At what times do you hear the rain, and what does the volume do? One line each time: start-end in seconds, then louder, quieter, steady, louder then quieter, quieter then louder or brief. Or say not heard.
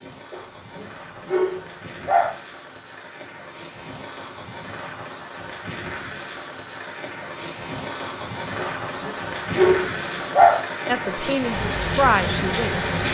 0.0-13.0 louder.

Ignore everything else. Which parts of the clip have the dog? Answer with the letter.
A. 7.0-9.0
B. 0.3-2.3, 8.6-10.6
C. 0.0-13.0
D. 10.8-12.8
B.